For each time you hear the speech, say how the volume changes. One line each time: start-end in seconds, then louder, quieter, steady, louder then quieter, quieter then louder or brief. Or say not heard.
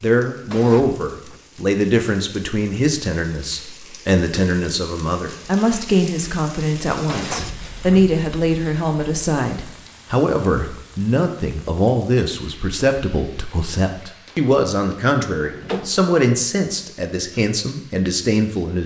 0.0-18.8 steady.